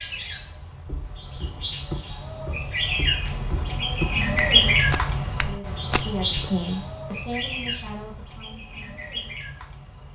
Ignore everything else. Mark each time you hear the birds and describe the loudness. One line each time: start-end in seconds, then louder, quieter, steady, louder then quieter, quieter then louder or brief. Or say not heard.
0.0-10.0 louder then quieter.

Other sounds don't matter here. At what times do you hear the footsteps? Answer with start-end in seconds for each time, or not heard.
0.8-6.5.